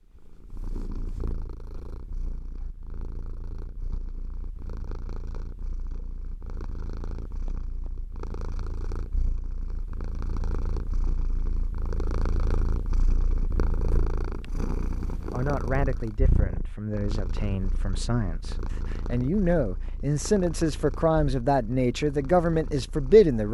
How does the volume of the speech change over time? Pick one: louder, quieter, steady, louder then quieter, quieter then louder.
louder.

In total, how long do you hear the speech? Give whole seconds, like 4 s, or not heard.
8 s.